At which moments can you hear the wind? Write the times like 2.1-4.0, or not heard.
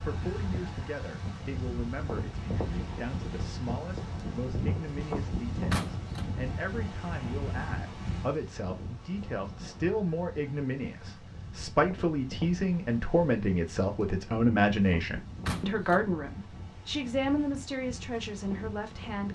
0.0-19.2.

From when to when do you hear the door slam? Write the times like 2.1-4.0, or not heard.
5.7-6.3, 15.4-16.1.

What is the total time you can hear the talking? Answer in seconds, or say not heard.
19 s.